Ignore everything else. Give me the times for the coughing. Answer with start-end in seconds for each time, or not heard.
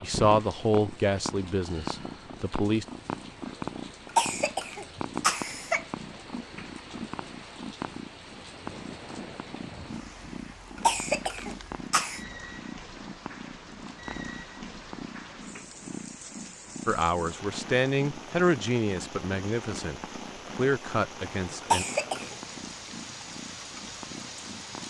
4.2-5.8, 10.8-12.2, 21.7-22.4.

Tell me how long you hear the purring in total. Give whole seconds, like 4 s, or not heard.
25 s.